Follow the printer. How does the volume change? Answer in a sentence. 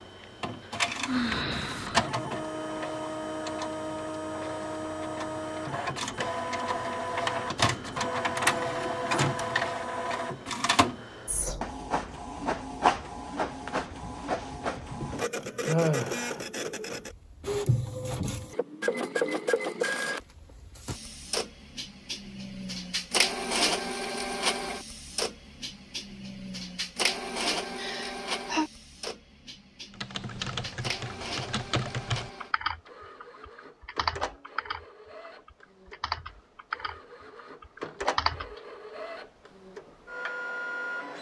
The volume of the printer goes down.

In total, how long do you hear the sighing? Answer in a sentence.
The sighing can be heard for 3 seconds in total.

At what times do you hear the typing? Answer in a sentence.
You can hear the typing from 30.0 to 38.5 s.